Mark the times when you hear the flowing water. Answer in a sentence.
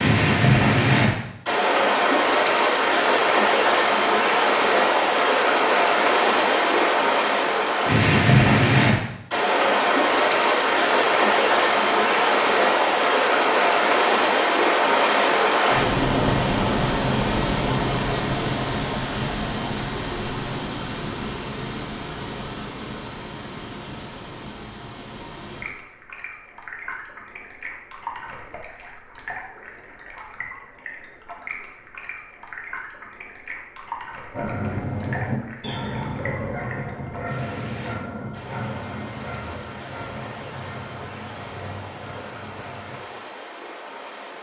The flowing water can be heard from 0.0 to 44.3 s.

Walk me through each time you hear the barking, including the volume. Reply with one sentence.
The barking can be heard from 34.3 to 43.0 s, getting quieter.